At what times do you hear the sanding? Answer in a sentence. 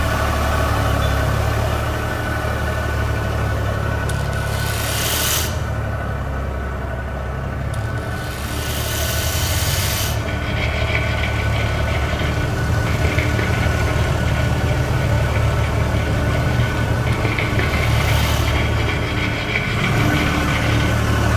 You can hear the sanding from 10.1 to 21.1 s.